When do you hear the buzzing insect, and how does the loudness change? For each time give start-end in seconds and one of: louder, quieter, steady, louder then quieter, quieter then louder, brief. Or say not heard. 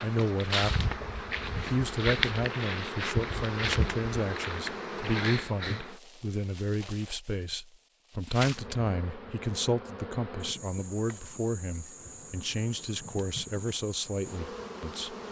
0.0-15.2 quieter.